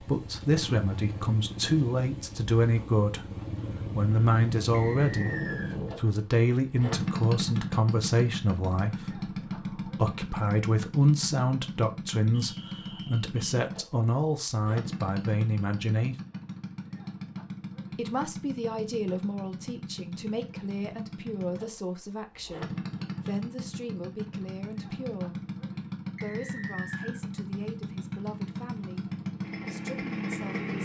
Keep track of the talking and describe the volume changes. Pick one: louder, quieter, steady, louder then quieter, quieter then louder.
quieter.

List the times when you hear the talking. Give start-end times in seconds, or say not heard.
0.0-16.1, 17.9-25.4, 26.2-30.7.